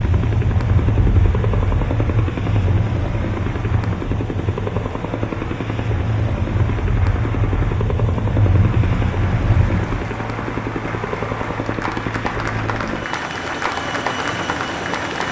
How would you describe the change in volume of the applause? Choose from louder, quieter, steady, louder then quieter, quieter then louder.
louder.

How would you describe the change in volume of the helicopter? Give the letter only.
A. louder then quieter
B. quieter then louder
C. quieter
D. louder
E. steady
E.